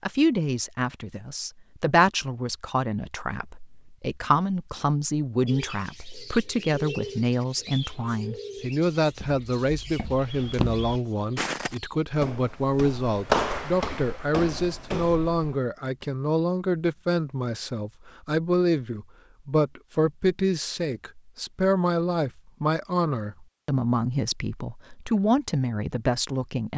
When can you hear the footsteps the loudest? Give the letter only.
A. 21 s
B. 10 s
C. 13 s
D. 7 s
C.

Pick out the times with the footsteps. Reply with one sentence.
The footsteps can be heard from 9.0 to 16.1 s.